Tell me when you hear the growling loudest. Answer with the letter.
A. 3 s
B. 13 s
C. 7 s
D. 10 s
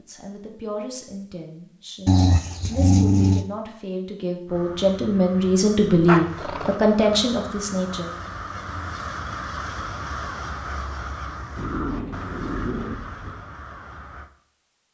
A.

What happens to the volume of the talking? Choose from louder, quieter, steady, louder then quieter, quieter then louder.
louder.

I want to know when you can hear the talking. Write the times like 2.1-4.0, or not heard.
0.0-8.1.